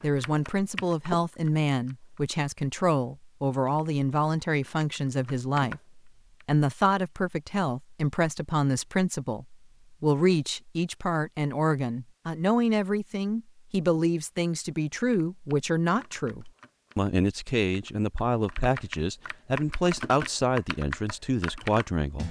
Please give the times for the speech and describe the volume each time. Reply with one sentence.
You can hear the speech from 0.0 to 22.2 s, at a steady volume.